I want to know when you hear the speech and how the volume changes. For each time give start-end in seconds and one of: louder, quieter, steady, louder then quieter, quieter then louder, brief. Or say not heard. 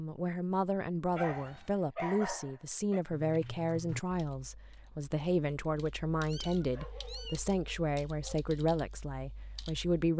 0.0-10.1 steady.